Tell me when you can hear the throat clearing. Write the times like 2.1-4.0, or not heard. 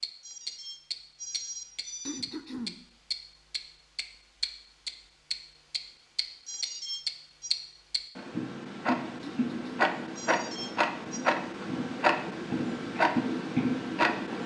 2.0-2.8, 9.2-9.9.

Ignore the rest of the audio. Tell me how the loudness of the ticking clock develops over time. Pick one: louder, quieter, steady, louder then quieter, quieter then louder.
louder.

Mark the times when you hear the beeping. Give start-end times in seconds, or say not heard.
0.2-2.2, 6.5-7.5, 10.2-11.2.